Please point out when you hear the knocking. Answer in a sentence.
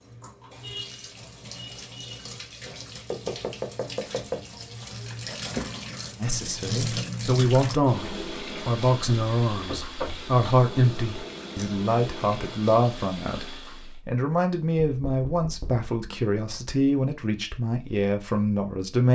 You can hear the knocking from 3.1 to 4.5 s, from 9.7 to 10.2 s and from 14.8 to 15.9 s.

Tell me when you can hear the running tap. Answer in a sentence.
You can hear the running tap from 0.0 to 14.0 s.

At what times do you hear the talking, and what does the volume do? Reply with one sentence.
The talking can be heard from 6.2 to 19.1 s, at a steady volume.